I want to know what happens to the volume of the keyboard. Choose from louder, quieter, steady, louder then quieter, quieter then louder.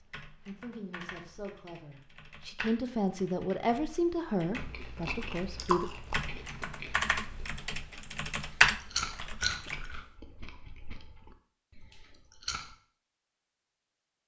louder.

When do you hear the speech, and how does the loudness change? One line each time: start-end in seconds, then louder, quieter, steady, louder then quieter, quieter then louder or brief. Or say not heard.
0.0-5.8 louder then quieter.